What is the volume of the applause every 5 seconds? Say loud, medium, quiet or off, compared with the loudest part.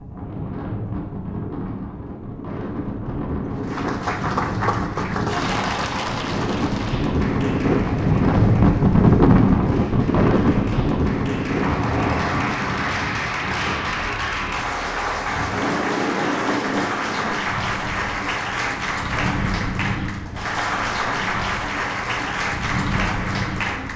loud, medium, loud, loud, loud.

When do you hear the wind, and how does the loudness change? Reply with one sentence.
You can hear the wind from 0.0 to 23.9 s, getting louder then quieter.